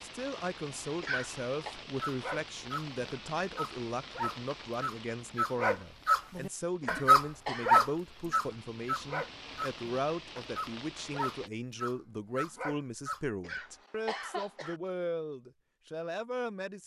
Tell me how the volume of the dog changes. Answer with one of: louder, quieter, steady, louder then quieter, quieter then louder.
louder then quieter.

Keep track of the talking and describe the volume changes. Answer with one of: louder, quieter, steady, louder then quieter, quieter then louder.
steady.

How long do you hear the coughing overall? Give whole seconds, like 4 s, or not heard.
3 s.